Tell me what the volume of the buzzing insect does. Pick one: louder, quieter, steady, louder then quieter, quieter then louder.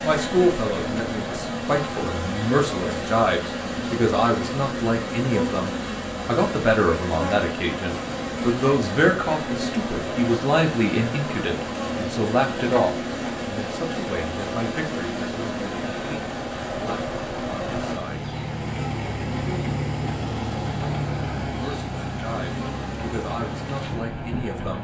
quieter.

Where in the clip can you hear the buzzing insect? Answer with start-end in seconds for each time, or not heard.
0.0-24.4.